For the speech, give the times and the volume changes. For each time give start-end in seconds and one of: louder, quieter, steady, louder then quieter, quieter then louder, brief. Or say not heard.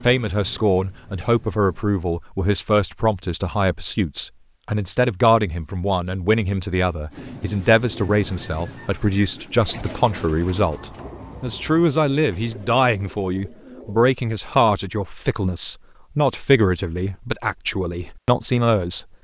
0.0-19.1 steady.